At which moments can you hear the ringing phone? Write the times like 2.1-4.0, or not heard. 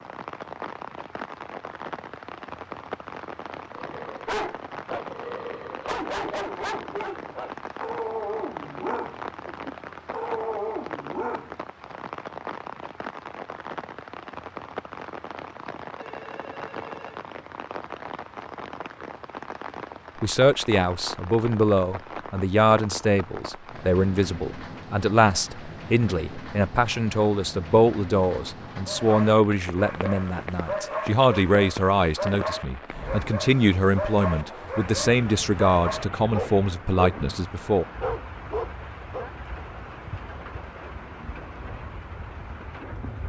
15.9-17.2.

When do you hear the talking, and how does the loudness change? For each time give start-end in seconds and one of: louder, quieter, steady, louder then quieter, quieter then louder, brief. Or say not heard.
20.2-37.9 steady.